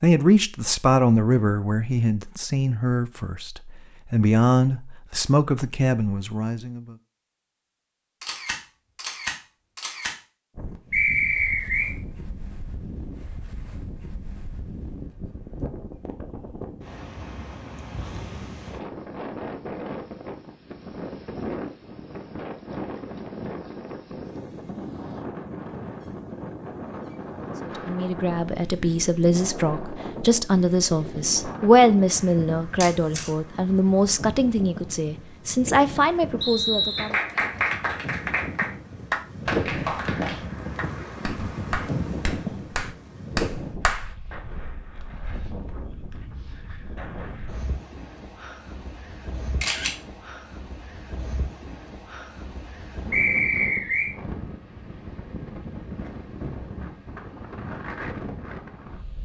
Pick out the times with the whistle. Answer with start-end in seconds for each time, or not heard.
10.9-11.9, 36.4-37.1, 53.1-54.1.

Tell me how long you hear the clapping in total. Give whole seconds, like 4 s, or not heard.
7 s.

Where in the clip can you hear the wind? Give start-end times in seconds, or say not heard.
10.6-59.2.